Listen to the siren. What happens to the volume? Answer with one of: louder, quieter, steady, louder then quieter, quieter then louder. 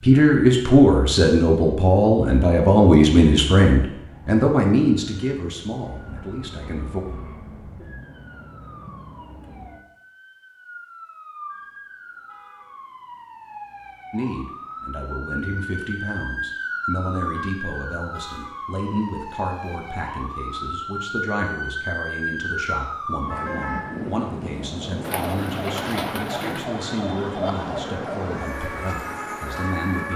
louder.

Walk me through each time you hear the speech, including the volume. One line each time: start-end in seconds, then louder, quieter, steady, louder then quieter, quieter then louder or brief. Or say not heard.
0.0-7.0 quieter
14.1-30.1 steady.